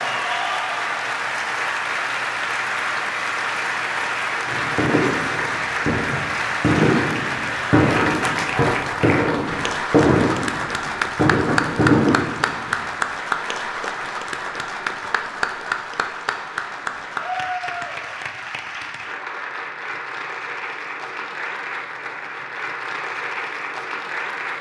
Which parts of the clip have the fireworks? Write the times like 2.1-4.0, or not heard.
4.5-12.8.